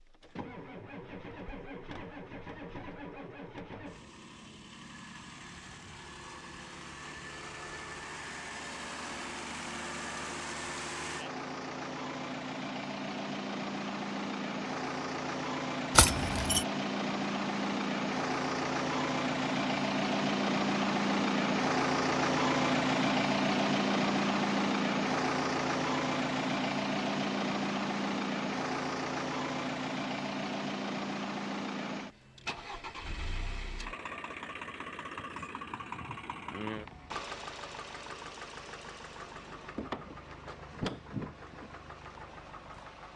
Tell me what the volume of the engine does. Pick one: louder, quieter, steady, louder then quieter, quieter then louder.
louder then quieter.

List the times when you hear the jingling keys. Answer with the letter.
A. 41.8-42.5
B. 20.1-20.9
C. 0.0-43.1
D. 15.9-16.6
D.